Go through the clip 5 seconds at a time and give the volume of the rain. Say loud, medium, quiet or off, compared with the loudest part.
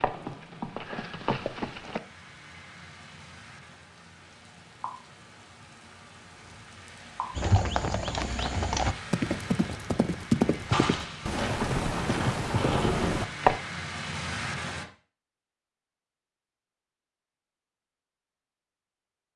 quiet, medium, loud, off.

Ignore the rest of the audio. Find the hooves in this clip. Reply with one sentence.
You can hear the hooves from 0.0 to 2.0 s and from 7.3 to 13.6 s.